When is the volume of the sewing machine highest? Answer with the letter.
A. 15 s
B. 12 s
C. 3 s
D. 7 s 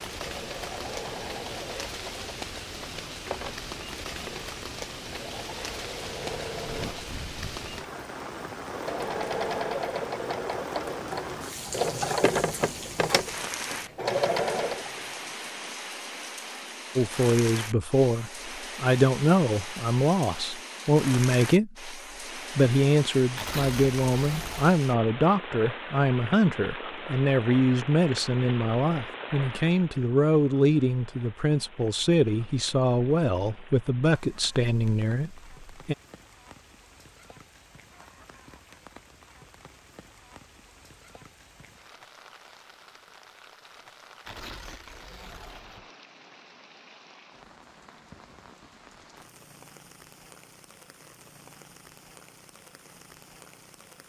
B.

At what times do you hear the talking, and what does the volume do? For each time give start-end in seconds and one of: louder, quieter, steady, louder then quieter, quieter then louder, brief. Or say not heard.
16.9-36.0 steady.